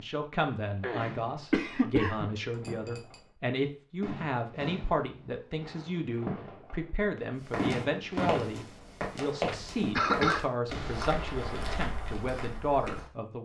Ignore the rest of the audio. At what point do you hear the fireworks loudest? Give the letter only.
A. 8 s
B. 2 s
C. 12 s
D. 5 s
A.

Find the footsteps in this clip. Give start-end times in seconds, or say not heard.
7.3-13.1.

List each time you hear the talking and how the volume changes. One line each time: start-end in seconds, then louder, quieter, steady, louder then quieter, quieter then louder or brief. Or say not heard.
0.0-13.3 steady.